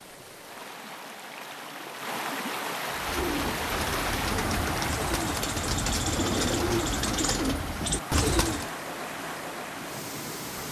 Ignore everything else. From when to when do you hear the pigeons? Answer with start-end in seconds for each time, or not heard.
2.9-8.7.